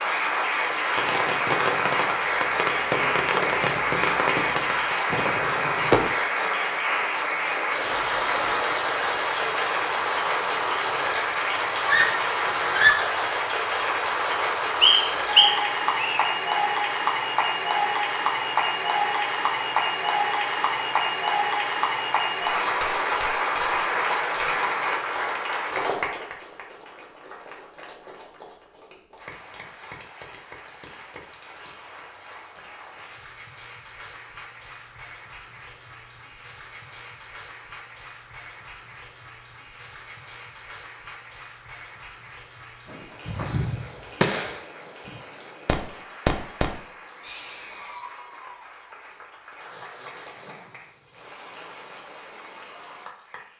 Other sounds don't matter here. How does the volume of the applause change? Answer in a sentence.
The volume of the applause goes down.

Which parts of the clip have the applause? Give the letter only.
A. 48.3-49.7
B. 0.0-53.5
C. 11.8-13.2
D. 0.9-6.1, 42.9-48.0
B.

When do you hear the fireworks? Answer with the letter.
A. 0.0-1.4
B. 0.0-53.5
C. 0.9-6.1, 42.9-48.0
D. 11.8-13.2
C.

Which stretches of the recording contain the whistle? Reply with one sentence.
You can hear the whistle from 14.8 to 16.2 s.